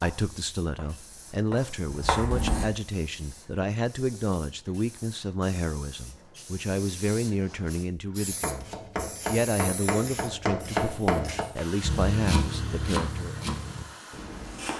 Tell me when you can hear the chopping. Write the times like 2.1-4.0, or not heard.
0.0-2.6, 8.3-14.7.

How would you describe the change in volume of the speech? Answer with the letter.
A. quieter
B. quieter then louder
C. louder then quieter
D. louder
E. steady
E.